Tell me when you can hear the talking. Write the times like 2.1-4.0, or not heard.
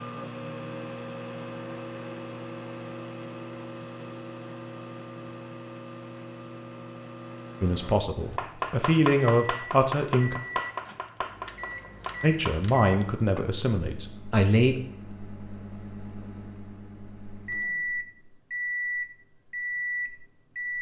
7.6-10.4, 12.2-14.8.